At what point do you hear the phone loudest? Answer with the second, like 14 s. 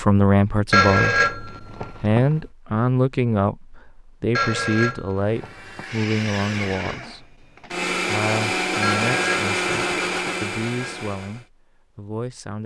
1 s.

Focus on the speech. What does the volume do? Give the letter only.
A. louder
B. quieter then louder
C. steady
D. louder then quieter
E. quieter
E.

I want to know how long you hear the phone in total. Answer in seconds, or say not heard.
5 s.